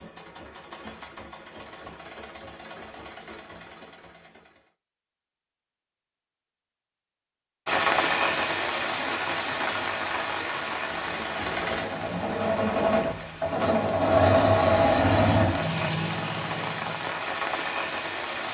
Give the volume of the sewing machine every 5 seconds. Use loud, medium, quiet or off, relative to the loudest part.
quiet, off, loud, loud.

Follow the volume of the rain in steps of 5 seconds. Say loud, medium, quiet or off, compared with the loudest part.
off, loud, medium, medium.